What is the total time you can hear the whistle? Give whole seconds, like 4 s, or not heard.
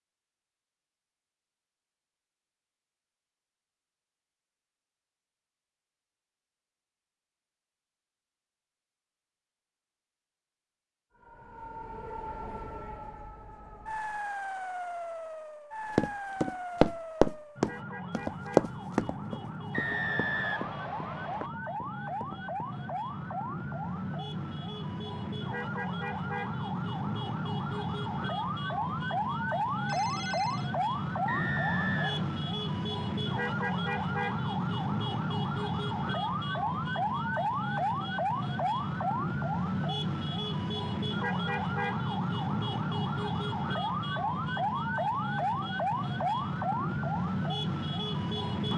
3 s.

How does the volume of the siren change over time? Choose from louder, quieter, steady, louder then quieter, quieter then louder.
louder.